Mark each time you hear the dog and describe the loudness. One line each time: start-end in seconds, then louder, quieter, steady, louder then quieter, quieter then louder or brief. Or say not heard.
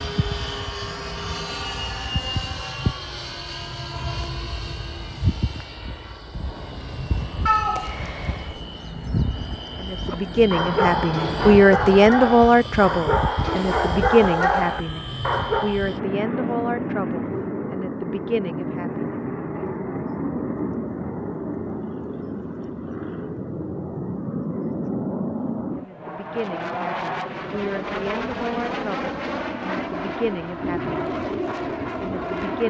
10.1-15.8 steady.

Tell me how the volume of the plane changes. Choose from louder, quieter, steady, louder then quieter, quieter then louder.
steady.